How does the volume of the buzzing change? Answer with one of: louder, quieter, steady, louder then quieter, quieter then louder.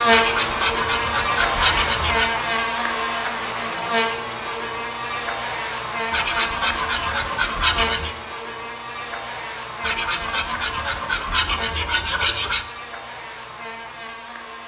quieter.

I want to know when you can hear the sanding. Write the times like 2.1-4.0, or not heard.
0.1-2.3, 6.1-8.2, 9.8-12.7.